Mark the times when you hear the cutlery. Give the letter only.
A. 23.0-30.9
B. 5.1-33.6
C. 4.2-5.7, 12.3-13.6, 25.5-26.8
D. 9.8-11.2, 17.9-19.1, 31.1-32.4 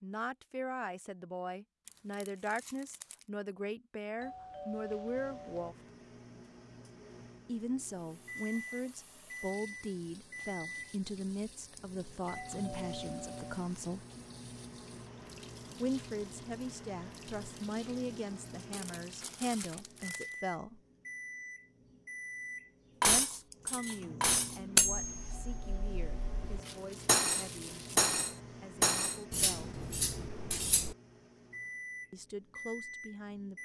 A.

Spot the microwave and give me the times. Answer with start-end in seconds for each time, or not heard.
5.1-33.6.